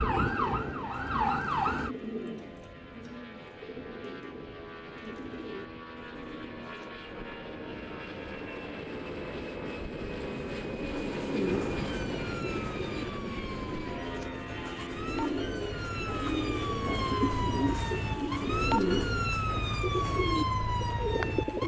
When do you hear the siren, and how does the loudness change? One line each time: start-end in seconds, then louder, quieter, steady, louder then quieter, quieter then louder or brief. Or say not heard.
0.0-1.9 brief
11.6-21.6 louder.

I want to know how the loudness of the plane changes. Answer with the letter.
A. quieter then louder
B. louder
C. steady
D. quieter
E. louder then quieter
E.